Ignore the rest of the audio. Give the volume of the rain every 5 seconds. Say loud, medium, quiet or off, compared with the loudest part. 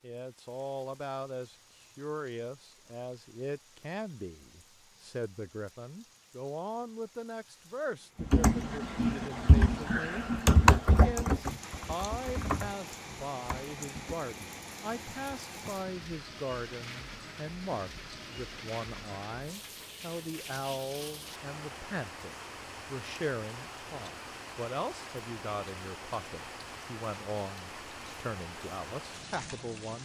quiet, quiet, loud, loud, loud, loud.